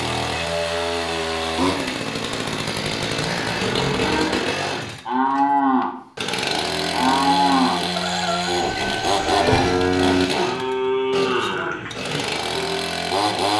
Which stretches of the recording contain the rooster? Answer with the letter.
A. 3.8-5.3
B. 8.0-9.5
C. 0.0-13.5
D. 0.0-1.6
B.